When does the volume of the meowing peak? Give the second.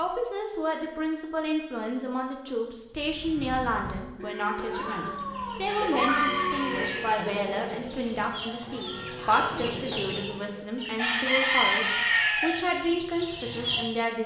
6 s.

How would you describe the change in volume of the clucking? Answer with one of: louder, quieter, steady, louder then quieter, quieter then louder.
louder.